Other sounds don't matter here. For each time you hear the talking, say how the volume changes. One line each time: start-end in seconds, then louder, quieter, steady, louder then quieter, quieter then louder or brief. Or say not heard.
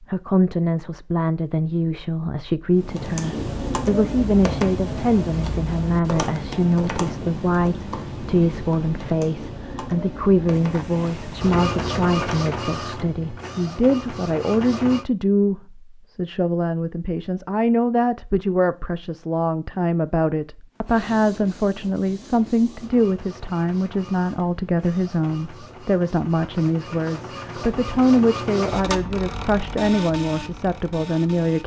0.0-31.6 steady.